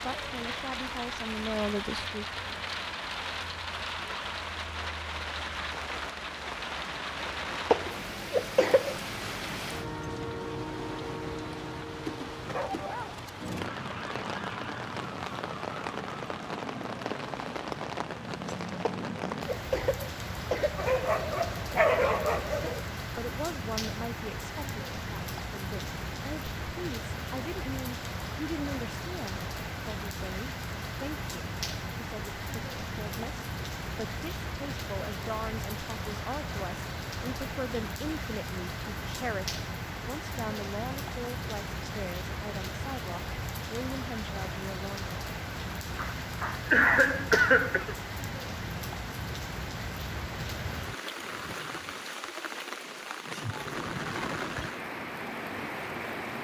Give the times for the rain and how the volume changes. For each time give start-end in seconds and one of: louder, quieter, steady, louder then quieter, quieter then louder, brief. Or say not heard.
0.0-56.3 steady.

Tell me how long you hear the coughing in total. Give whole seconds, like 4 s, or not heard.
5 s.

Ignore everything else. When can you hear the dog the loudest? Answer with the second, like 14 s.
22 s.